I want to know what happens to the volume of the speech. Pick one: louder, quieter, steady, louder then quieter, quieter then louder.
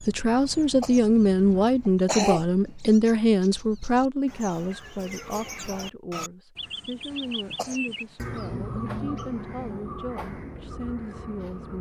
quieter.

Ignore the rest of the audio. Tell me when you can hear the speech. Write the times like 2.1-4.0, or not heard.
0.1-11.7.